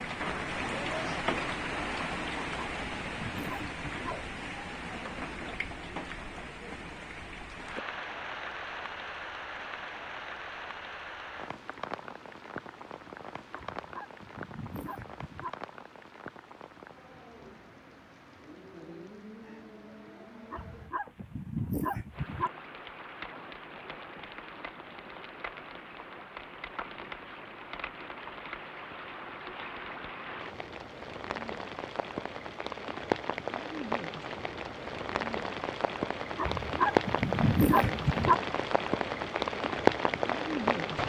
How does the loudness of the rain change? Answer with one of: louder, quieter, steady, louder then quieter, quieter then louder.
quieter then louder.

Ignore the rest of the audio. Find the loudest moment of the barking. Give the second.
38 s.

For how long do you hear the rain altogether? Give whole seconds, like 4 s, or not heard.
41 s.